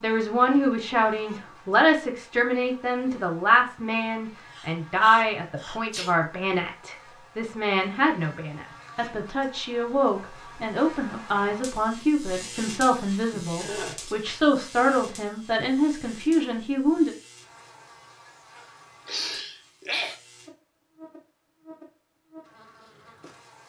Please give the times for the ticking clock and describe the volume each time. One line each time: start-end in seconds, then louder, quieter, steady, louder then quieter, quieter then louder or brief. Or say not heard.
not heard.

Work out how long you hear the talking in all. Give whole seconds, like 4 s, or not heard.
17 s.